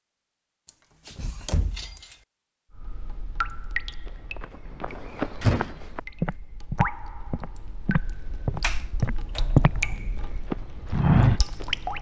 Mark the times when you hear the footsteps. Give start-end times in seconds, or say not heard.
4.4-9.8, 10.5-11.7.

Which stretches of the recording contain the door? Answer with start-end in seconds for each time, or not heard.
0.7-2.1, 5.0-5.7, 8.6-10.0.